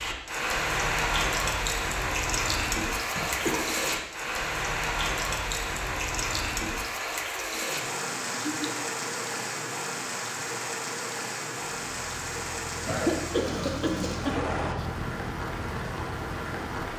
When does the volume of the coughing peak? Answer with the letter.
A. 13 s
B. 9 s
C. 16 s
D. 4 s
A.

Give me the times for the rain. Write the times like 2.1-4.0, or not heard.
0.0-16.9.